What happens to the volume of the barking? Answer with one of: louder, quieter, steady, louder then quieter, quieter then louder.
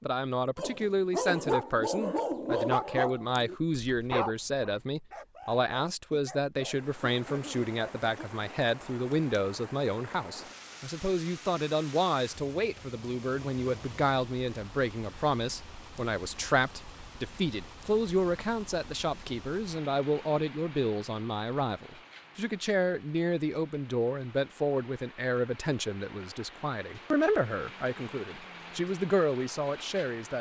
quieter.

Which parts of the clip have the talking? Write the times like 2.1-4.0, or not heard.
0.0-30.3.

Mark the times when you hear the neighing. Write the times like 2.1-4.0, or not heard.
not heard.